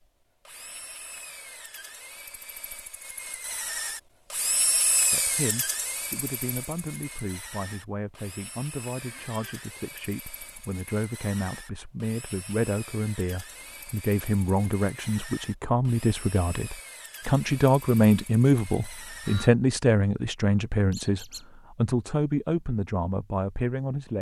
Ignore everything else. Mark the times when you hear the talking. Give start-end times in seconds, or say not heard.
5.1-24.1.